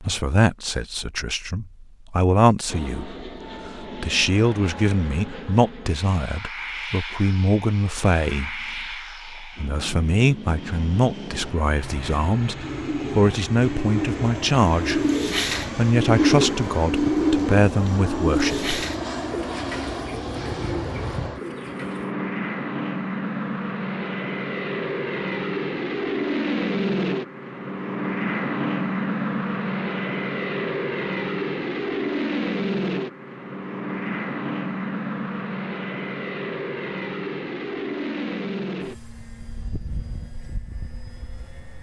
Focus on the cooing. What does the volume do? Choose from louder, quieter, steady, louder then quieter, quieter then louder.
louder then quieter.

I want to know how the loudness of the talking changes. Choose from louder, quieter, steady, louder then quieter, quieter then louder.
steady.